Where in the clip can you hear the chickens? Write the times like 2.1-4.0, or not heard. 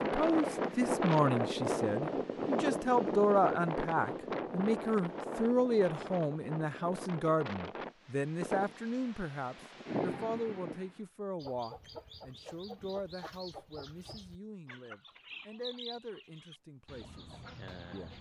11.3-18.1.